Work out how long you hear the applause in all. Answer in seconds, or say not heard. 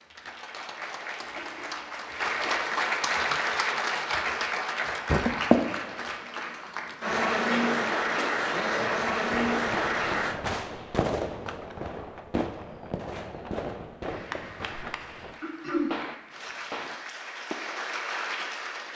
15 s.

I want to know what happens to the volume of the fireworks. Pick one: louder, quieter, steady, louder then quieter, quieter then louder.
quieter.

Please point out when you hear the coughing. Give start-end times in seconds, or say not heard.
1.1-2.6, 7.5-8.2, 15.4-15.9.